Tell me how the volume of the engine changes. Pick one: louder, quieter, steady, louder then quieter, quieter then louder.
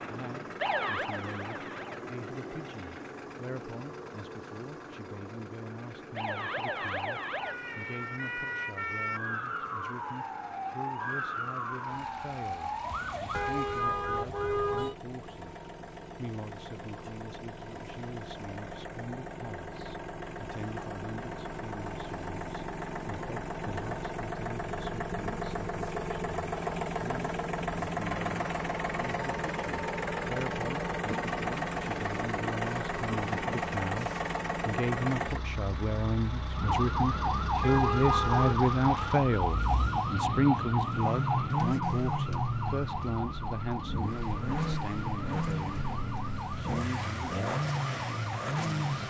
louder.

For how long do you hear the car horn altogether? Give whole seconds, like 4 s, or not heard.
3 s.